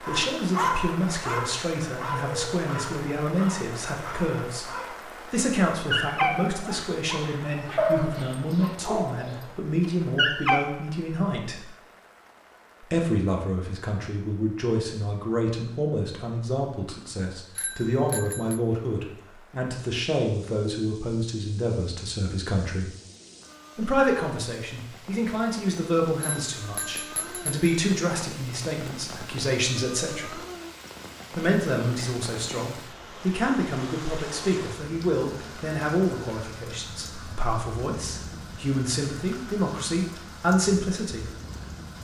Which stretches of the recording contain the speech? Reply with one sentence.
The speech can be heard from 0.0 to 11.7 s, from 12.8 to 22.9 s, from 23.8 to 30.4 s and from 31.3 to 41.3 s.